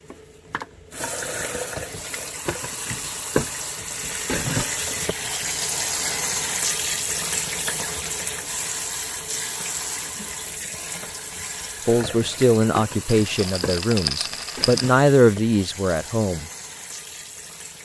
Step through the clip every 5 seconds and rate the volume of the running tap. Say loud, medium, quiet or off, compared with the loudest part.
loud, loud, medium, medium.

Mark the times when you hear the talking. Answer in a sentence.
You can hear the talking from 11.8 to 16.4 s.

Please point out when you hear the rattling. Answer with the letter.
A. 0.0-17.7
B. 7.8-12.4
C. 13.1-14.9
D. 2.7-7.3
C.